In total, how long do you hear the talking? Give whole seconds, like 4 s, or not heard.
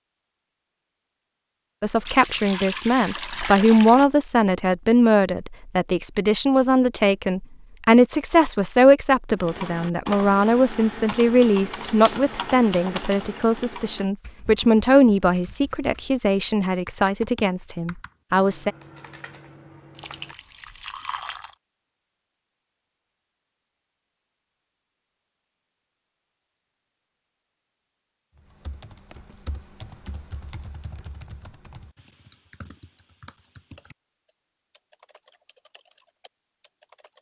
17 s.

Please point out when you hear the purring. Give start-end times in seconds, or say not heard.
not heard.